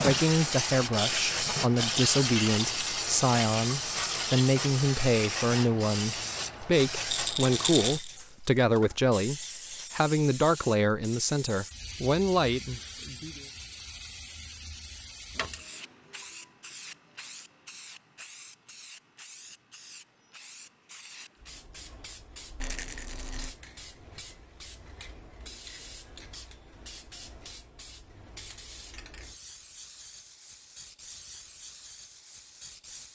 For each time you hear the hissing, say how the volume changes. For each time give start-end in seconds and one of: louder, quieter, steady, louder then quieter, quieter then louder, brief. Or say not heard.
0.0-33.1 quieter.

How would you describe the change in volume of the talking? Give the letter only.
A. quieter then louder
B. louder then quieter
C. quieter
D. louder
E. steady
E.